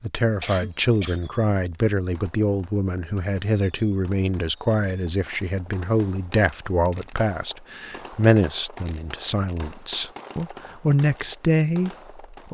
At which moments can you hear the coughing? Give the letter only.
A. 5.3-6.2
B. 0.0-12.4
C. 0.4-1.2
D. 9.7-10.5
C.